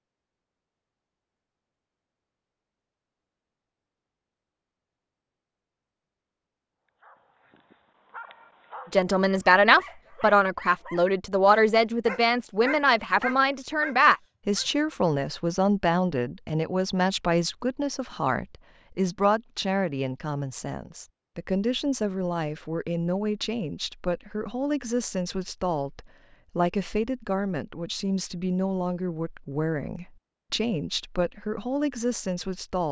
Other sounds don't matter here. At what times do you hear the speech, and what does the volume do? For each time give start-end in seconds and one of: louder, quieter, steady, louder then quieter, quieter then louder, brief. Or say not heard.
8.9-32.8 quieter.